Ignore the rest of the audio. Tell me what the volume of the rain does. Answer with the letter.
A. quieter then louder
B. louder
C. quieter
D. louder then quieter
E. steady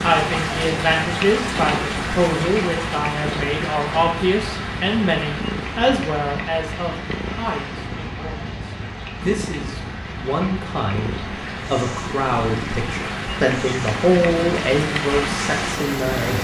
A.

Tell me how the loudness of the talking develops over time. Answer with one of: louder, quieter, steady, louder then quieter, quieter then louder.
quieter then louder.